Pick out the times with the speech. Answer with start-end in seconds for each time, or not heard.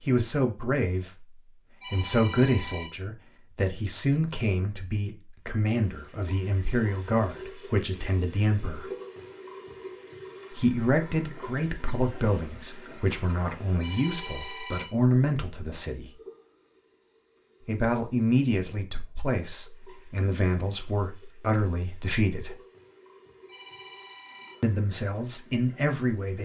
0.0-8.9, 10.5-16.1, 17.6-22.6, 24.6-26.4.